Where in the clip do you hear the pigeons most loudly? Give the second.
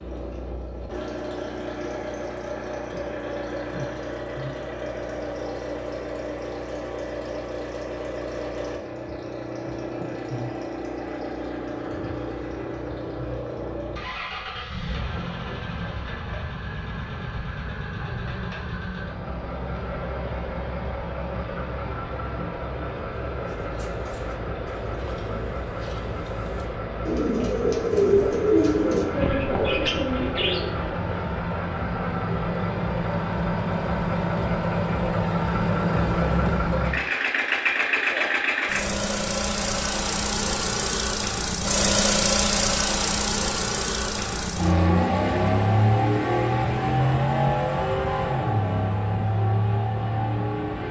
28 s.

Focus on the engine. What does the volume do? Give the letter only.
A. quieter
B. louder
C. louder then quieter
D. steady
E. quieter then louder
B.